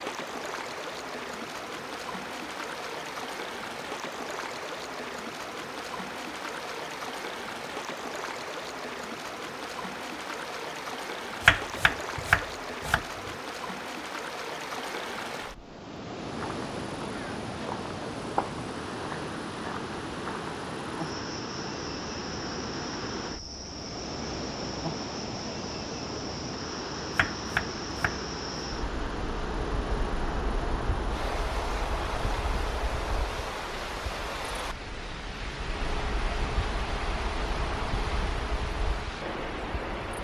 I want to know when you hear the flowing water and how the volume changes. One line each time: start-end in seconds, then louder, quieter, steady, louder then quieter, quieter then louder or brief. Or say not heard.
0.0-40.1 steady.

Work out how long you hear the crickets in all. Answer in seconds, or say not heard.
24 s.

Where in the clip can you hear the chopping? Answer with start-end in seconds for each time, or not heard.
11.4-13.3, 27.1-28.2.